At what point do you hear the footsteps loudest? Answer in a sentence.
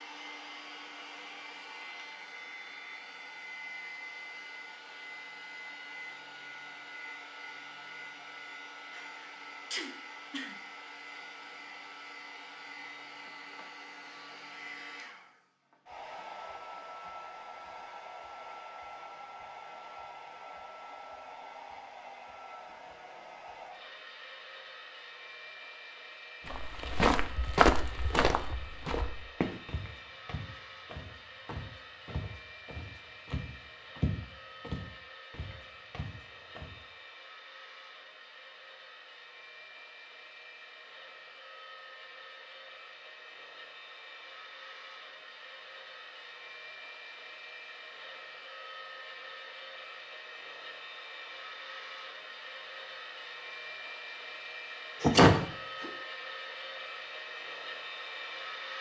The volume of the footsteps peaks at 28 seconds.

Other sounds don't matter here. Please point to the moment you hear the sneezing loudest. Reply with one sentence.
The volume of the sneezing peaks at 55 seconds.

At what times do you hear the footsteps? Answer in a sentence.
You can hear the footsteps from 26.4 to 36.8 s.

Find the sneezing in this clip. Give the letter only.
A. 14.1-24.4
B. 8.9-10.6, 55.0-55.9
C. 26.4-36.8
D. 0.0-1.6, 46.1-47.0
B.